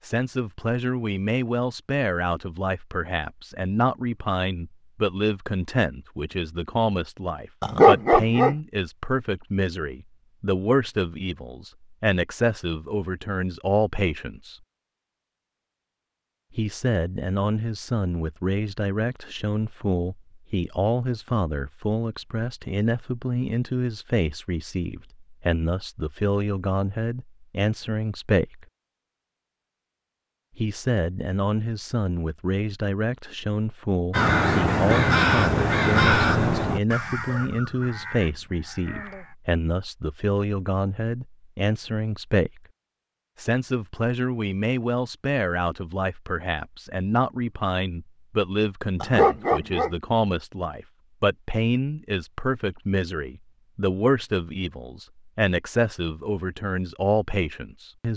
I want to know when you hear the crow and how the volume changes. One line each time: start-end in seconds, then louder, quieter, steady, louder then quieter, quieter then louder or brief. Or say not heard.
34.1-39.4 quieter.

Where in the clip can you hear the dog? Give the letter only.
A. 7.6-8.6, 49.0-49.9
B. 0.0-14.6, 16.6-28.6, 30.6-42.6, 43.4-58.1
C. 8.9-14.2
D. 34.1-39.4
A.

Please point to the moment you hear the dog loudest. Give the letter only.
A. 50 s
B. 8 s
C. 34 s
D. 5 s
B.